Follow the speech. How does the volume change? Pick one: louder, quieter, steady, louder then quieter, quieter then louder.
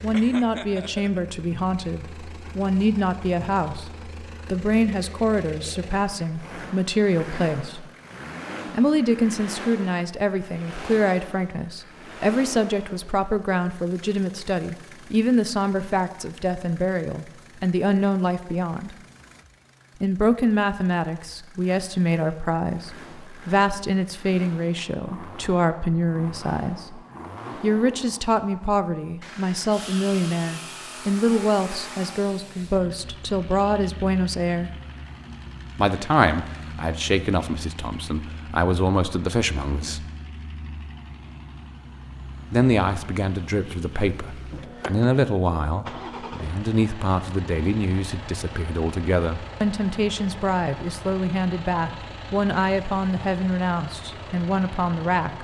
steady.